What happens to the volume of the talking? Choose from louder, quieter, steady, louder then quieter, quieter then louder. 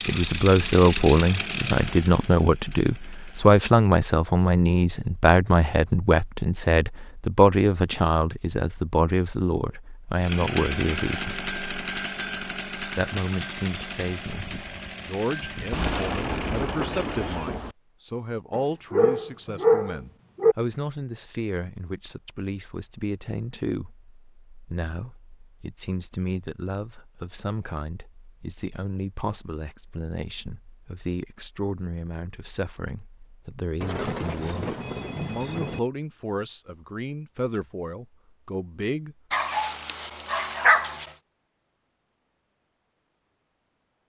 quieter.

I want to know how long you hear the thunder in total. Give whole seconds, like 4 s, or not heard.
4 s.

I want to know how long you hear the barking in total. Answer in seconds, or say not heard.
4 s.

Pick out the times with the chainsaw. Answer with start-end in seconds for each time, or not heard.
0.0-3.6, 10.2-17.6.